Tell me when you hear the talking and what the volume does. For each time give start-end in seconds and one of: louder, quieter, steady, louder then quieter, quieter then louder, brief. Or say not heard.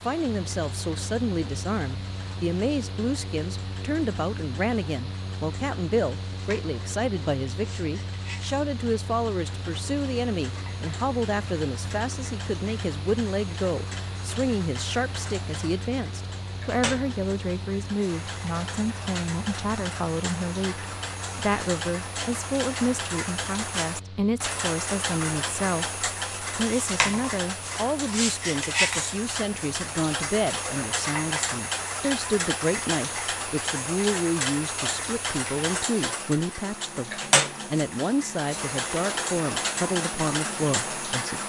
0.1-41.4 steady.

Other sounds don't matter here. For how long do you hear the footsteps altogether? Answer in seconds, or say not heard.
not heard.